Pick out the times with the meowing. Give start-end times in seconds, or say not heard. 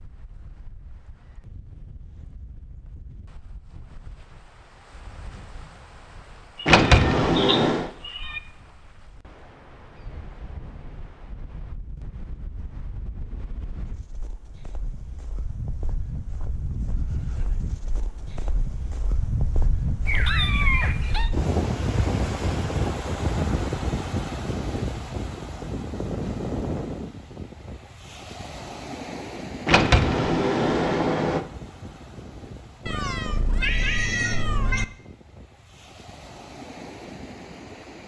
6.5-8.4, 20.1-21.3, 32.9-34.9.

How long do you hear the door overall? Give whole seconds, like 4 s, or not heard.
3 s.